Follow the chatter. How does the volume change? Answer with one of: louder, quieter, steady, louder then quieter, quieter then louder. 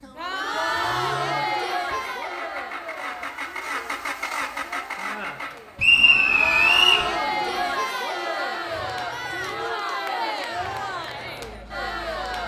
quieter then louder.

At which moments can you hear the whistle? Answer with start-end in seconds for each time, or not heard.
5.8-7.0.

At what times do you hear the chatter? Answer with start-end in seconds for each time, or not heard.
0.0-12.4.